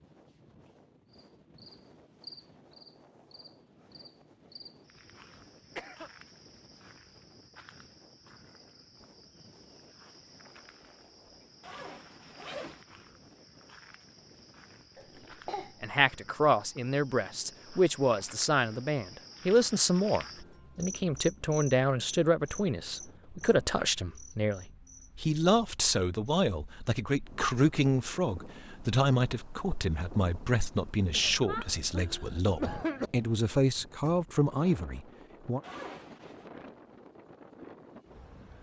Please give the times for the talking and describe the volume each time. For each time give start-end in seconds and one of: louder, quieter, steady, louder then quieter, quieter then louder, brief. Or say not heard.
15.8-35.6 steady.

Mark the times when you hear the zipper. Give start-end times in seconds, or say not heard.
11.6-12.8, 35.6-36.5.